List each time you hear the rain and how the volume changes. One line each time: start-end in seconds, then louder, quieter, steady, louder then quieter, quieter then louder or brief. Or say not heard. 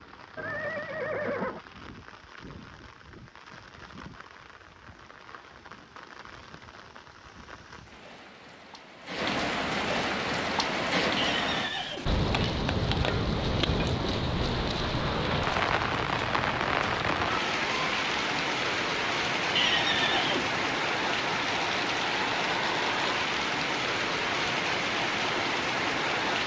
0.0-26.4 louder.